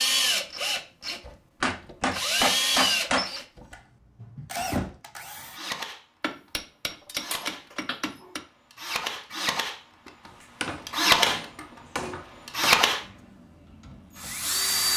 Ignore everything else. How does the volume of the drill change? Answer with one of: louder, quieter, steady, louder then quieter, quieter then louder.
quieter then louder.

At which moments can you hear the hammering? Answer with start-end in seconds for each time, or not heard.
1.6-3.3, 6.2-8.4, 10.2-12.8.